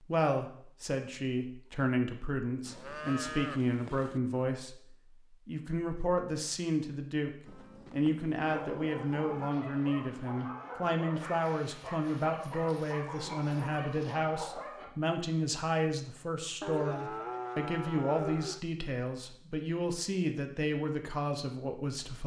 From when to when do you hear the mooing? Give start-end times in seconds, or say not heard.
2.6-4.2, 7.5-9.3, 16.6-18.6.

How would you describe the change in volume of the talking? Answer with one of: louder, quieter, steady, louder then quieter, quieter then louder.
steady.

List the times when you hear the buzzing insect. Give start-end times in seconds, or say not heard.
not heard.